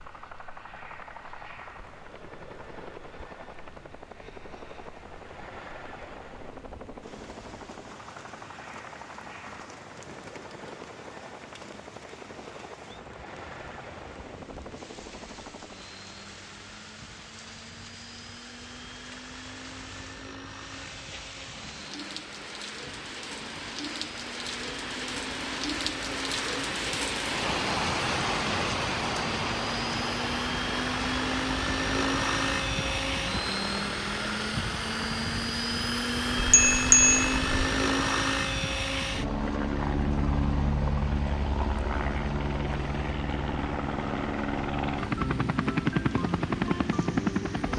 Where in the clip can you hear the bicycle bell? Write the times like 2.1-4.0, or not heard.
36.4-37.5.